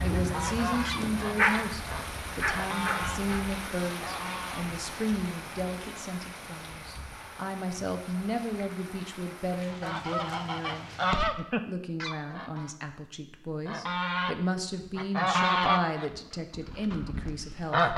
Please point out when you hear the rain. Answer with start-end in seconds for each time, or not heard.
0.0-11.3.